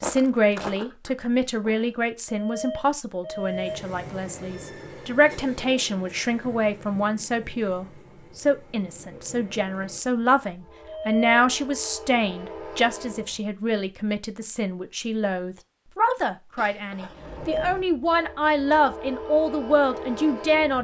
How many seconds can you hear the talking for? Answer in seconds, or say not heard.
21 s.